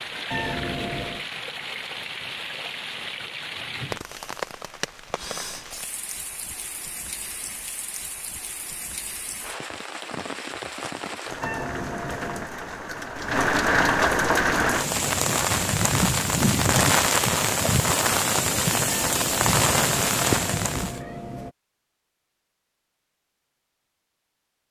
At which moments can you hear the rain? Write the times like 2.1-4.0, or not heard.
0.0-21.0.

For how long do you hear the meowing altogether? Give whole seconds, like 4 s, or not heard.
5 s.